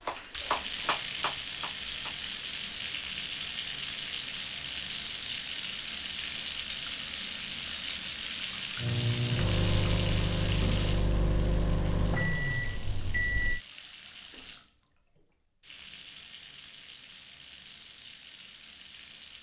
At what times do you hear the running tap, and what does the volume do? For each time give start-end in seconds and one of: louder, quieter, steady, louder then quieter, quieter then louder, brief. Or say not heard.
0.0-19.3 quieter.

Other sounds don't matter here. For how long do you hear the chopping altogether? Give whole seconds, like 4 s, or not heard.
2 s.